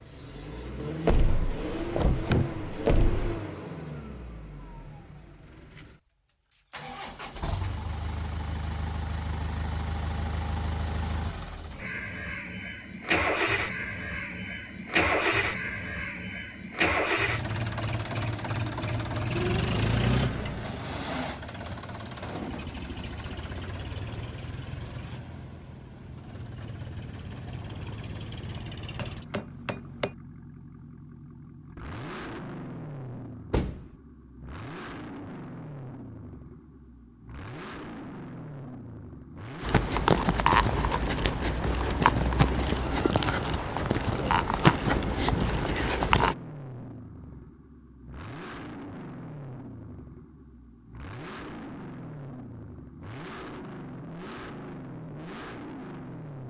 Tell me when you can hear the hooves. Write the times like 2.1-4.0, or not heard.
39.6-46.4.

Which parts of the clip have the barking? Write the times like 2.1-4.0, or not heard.
not heard.